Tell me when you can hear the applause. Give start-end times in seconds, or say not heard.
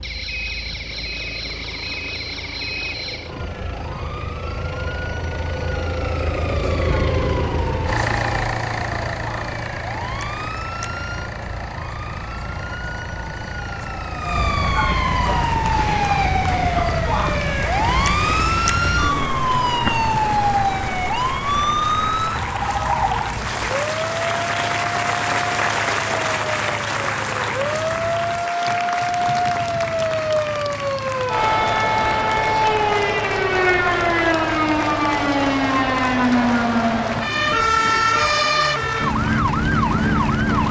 15.5-40.6.